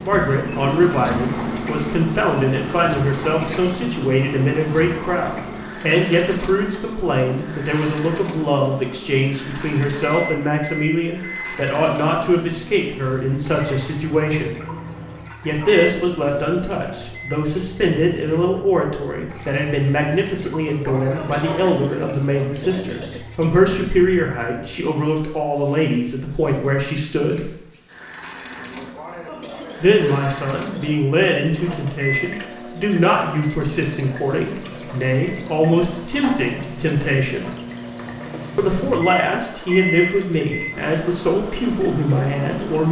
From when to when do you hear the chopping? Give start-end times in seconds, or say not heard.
not heard.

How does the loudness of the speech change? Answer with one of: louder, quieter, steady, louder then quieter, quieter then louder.
steady.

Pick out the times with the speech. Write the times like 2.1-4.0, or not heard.
0.0-14.6, 15.4-27.5, 29.8-37.5, 38.5-42.8.